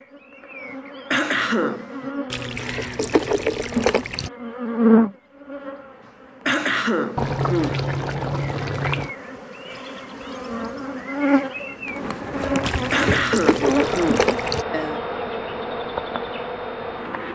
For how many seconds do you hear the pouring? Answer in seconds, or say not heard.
6 s.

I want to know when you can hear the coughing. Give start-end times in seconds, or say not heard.
1.1-2.0, 6.5-7.8, 12.9-15.0.